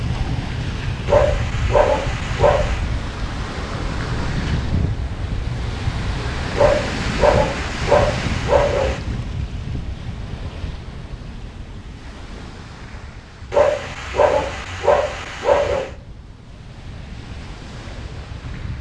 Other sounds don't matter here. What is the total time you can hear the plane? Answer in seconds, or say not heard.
not heard.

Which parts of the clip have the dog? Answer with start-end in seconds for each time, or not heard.
1.1-2.8, 6.5-9.0, 13.5-15.9.